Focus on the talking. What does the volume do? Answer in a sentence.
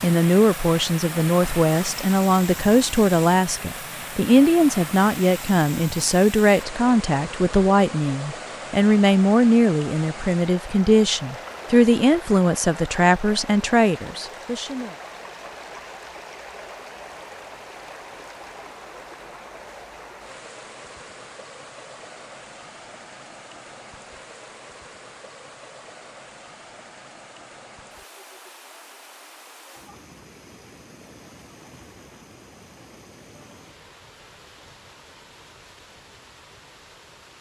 The loudness of the talking stays about the same.